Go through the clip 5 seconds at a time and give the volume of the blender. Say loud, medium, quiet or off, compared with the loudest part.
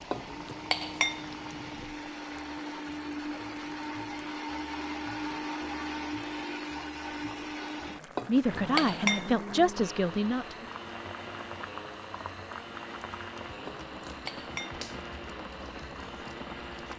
loud, loud, medium, medium.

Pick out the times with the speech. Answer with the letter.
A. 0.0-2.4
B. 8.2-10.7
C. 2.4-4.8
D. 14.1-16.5
B.